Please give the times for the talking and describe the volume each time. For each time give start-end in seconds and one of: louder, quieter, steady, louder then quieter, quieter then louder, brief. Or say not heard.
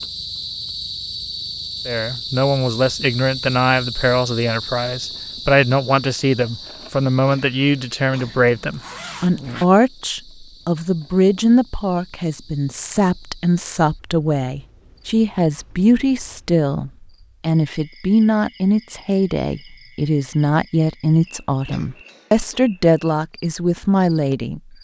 1.9-24.6 steady.